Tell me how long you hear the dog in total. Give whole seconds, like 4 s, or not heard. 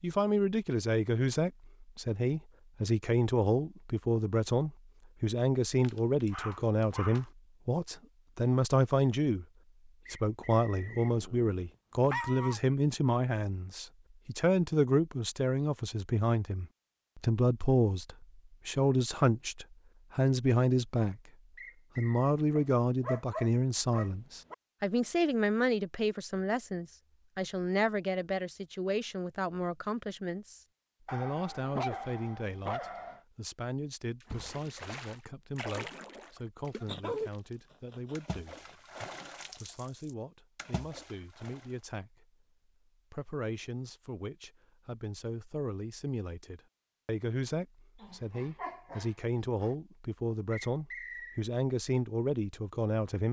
11 s.